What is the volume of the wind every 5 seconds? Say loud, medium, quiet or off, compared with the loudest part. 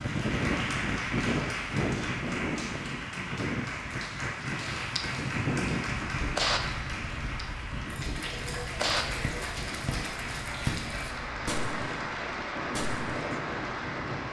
loud, loud, medium.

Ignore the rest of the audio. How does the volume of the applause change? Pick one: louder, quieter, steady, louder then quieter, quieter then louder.
steady.